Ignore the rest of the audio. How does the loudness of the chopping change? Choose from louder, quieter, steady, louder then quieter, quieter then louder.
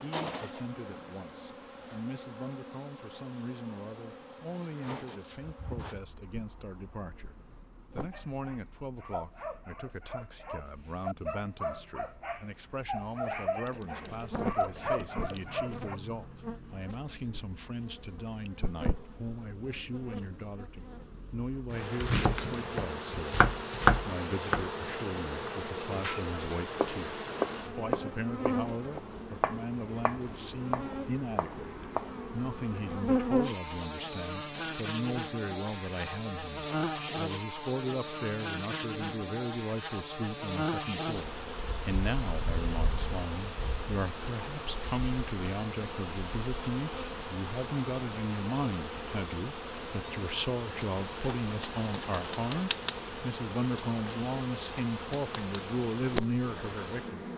louder then quieter.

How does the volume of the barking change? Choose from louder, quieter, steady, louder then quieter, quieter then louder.
louder.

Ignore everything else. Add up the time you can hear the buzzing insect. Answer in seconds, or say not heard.
57 s.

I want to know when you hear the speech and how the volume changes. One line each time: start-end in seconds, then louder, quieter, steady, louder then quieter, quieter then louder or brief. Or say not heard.
0.0-57.2 louder.